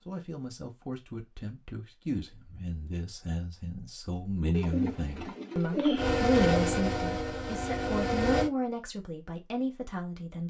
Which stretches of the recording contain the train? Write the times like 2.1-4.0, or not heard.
6.0-8.5.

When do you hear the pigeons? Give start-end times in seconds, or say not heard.
4.5-6.5.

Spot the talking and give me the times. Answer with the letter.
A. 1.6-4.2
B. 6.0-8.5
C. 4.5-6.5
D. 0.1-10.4
D.